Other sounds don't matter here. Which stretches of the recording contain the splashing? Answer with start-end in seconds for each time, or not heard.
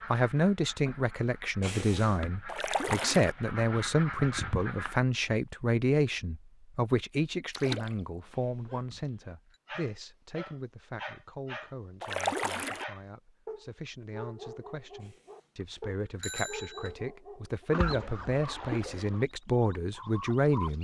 2.5-3.4, 7.5-8.0, 12.0-12.8, 17.7-19.2.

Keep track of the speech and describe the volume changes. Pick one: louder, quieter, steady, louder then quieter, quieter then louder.
quieter then louder.